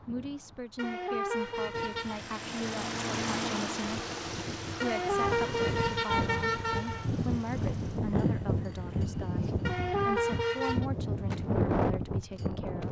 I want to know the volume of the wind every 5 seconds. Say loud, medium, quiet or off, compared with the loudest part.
quiet, loud, loud.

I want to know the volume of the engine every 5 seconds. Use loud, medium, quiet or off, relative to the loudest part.
loud, quiet, off.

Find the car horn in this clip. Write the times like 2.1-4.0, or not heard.
0.8-2.2, 4.8-7.1, 9.7-10.8.